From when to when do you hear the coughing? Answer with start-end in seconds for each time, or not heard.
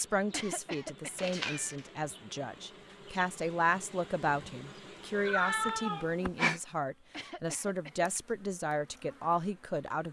0.3-1.3, 7.1-8.2.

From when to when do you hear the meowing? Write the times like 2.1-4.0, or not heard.
1.1-1.8, 5.1-6.6.